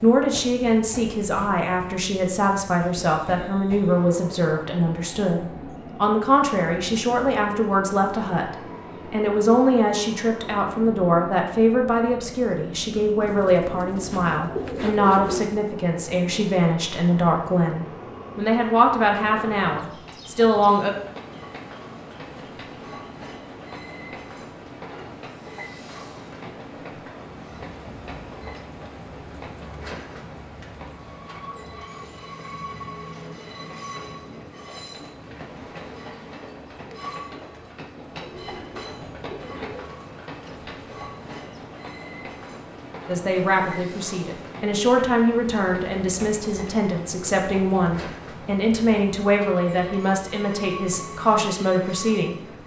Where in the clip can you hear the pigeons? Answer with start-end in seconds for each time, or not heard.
13.2-15.7, 38.0-39.9.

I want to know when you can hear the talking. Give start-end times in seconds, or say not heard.
0.0-20.9, 43.0-52.4.